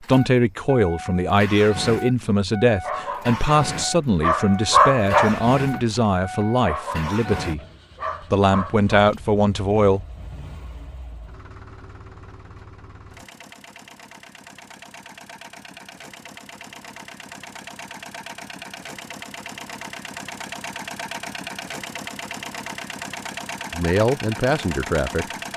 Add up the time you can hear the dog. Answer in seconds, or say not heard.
6 s.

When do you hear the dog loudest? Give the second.
5 s.